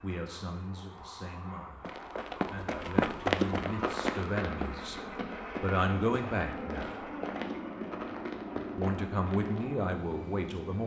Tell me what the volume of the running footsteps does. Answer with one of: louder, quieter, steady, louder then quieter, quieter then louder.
quieter.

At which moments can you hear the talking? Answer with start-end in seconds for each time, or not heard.
0.0-5.0, 5.6-7.1, 8.8-10.8.